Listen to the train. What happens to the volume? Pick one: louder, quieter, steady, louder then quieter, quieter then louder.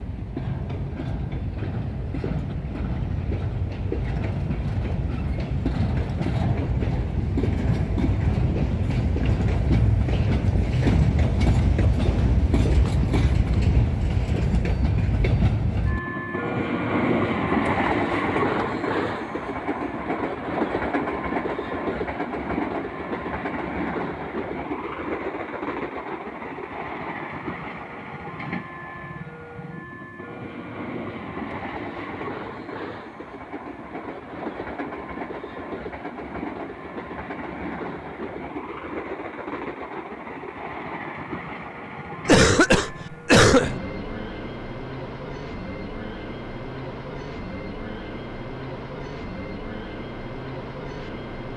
quieter.